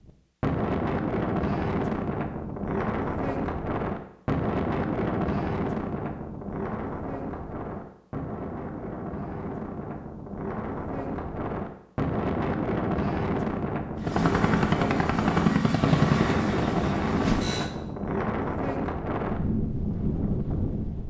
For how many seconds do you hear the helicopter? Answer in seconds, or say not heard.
4 s.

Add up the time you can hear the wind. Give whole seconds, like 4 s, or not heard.
21 s.